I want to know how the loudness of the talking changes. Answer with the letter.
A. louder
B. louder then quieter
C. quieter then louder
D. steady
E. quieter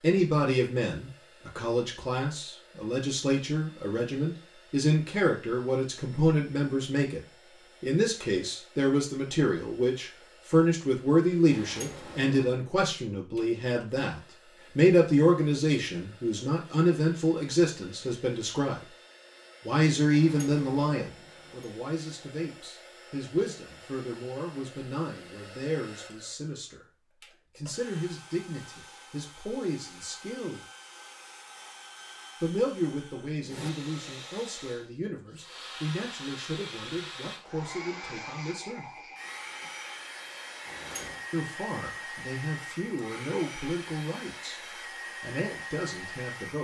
E.